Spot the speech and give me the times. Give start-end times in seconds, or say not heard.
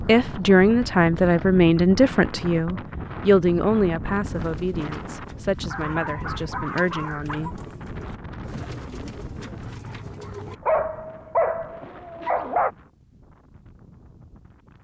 0.0-7.5.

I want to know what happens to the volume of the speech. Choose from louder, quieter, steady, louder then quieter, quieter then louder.
quieter.